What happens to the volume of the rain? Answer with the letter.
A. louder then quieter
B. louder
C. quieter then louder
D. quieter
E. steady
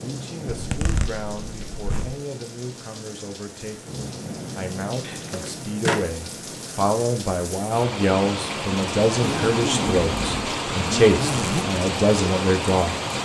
B.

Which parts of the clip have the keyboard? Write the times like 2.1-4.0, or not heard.
not heard.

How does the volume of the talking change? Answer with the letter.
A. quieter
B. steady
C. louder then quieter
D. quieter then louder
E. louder
E.